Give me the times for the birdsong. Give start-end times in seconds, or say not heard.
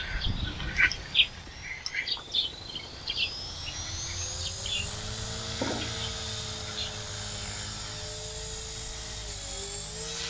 0.0-7.0.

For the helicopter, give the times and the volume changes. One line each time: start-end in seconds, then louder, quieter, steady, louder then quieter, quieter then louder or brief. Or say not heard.
0.0-10.2 louder.